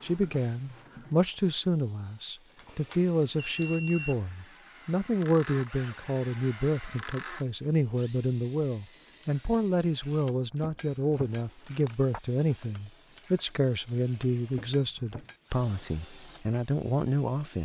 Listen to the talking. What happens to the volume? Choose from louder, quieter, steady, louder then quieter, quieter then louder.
steady.